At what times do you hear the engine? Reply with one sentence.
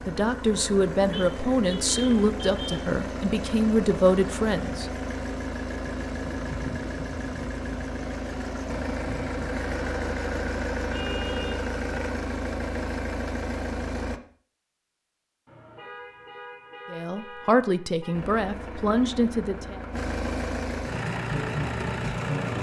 You can hear the engine from 0.0 to 14.2 s and from 18.1 to 22.5 s.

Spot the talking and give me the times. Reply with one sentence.
You can hear the talking from 0.1 to 4.9 s and from 16.9 to 19.8 s.